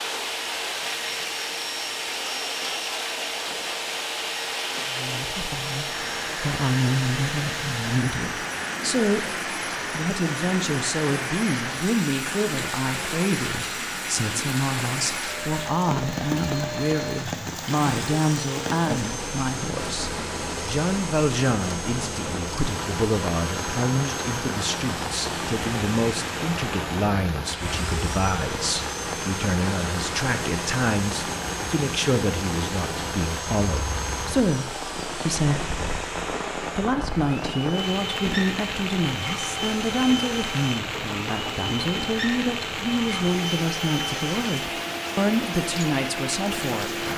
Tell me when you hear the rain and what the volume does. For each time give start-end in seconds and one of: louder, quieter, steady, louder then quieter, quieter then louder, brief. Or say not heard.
0.0-47.1 steady.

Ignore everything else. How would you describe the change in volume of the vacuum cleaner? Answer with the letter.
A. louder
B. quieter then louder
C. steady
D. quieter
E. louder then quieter
C.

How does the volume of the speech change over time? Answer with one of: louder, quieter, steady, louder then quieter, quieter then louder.
steady.